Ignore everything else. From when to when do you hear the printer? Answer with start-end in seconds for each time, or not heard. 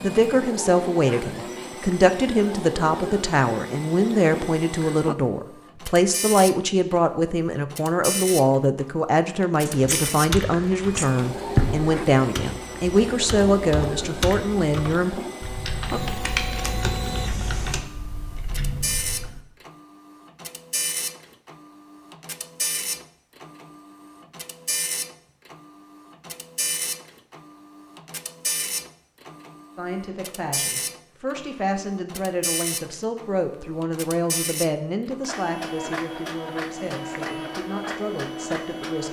0.0-39.0.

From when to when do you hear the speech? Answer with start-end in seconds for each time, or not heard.
0.0-15.2, 29.8-39.0.